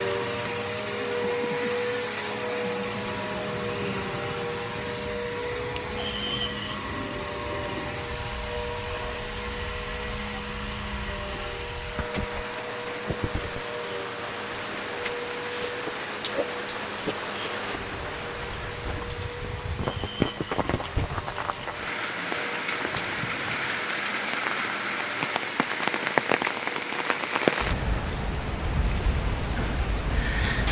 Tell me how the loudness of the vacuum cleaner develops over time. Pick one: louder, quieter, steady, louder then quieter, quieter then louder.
quieter.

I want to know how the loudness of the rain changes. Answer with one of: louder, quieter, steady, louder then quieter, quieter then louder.
louder.